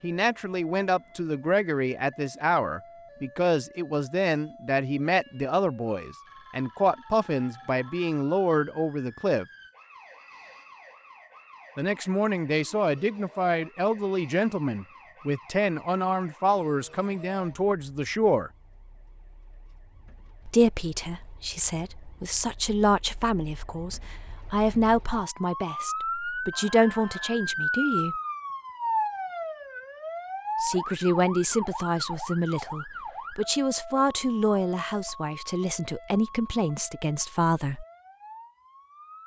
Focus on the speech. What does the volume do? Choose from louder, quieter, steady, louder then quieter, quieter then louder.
steady.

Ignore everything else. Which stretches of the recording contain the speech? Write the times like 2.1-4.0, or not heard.
0.0-9.4, 11.8-18.5, 20.4-28.2, 30.6-37.9.